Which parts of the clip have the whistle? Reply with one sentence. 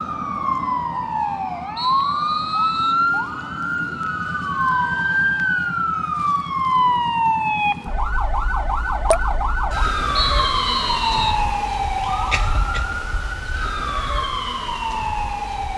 You can hear the whistle from 1.8 to 3.0 s and from 10.2 to 11.4 s.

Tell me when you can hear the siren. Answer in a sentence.
The siren can be heard from 0.0 to 15.7 s.